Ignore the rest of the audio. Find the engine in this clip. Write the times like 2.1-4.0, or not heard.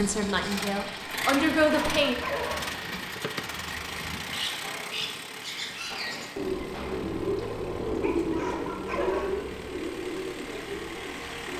0.0-11.5.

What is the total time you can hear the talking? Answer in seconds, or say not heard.
2 s.